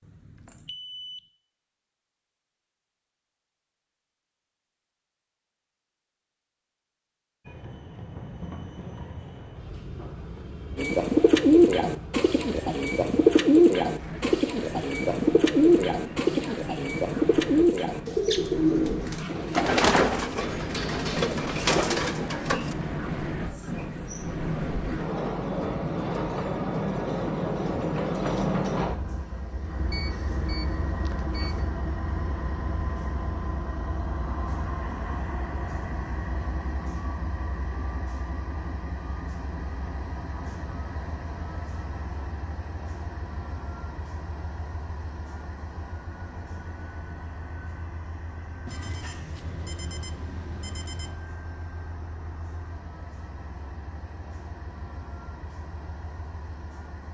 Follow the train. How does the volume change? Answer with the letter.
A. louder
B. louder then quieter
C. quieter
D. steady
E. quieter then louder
B.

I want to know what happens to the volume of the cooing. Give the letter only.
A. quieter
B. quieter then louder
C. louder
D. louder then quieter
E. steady
A.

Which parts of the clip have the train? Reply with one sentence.
You can hear the train from 7.5 to 57.0 s.